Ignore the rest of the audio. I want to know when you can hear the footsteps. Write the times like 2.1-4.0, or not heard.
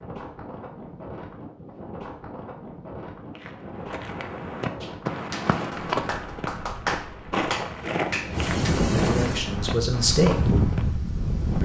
3.4-10.9.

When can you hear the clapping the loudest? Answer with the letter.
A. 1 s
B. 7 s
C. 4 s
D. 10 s
B.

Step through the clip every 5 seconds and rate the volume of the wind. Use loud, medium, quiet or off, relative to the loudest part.
quiet, loud, loud.